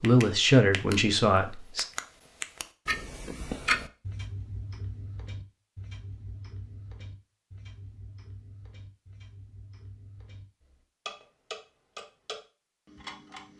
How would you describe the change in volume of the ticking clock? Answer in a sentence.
The loudness of the ticking clock goes down, then up.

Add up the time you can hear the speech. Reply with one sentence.
You can hear the speech for 2 seconds altogether.